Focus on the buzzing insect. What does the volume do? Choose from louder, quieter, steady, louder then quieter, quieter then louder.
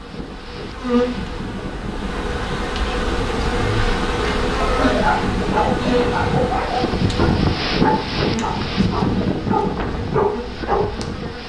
quieter.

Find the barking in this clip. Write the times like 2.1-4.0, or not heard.
4.5-10.9.